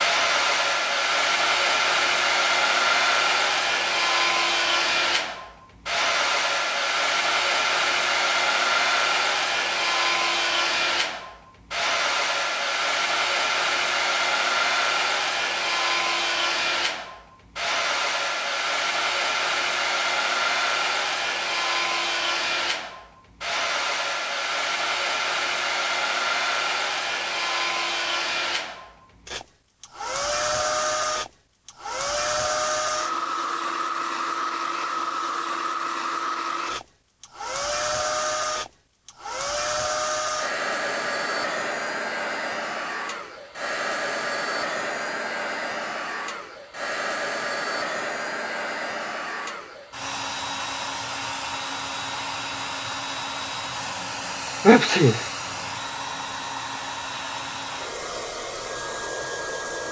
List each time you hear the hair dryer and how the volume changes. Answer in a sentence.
You can hear the hair dryer from 0.0 to 59.8 s, getting quieter.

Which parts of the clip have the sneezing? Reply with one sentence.
You can hear the sneezing from 54.6 to 55.2 s.